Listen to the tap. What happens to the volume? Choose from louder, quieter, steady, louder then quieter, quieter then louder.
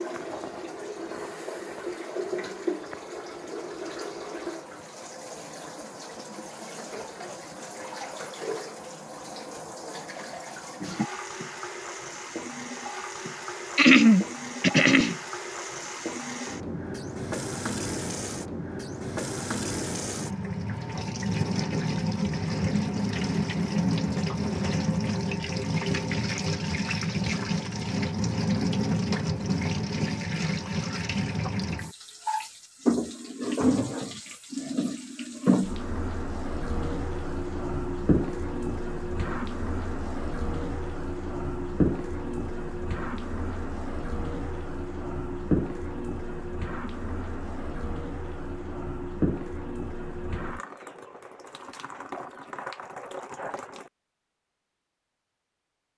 louder then quieter.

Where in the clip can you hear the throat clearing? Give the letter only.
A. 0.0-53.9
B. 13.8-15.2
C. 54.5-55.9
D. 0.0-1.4
B.